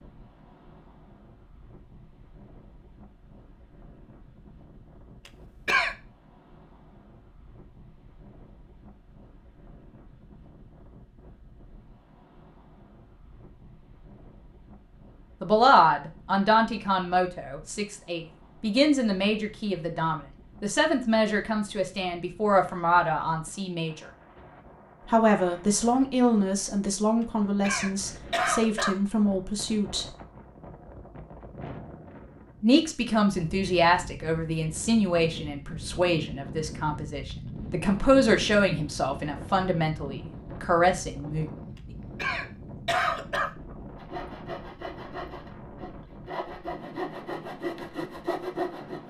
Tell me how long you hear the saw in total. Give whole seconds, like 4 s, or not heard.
5 s.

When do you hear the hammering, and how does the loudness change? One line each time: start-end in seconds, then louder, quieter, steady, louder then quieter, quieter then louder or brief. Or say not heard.
not heard.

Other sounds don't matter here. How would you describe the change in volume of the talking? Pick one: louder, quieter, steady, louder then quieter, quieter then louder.
steady.